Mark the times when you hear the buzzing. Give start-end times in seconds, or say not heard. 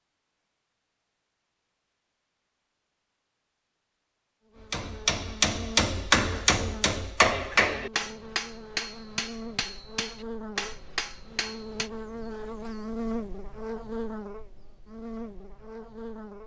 4.5-16.4.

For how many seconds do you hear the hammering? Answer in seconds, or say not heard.
7 s.